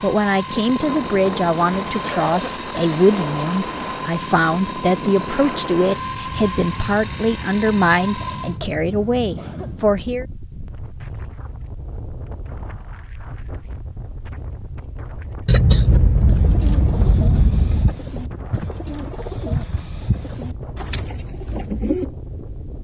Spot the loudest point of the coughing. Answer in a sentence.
The volume of the coughing peaks at 16 seconds.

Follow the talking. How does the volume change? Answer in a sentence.
The volume of the talking stays about the same.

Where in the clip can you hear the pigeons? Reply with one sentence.
The pigeons can be heard from 15.8 to 22.1 s.